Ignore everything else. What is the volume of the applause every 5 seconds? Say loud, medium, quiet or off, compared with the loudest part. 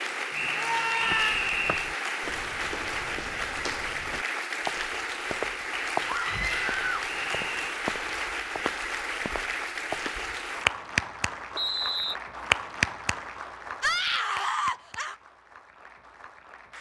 loud, loud, loud, quiet.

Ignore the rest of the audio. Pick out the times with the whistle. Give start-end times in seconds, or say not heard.
0.3-1.9, 6.4-7.8, 11.6-12.2.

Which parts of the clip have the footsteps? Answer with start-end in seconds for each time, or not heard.
1.0-10.5.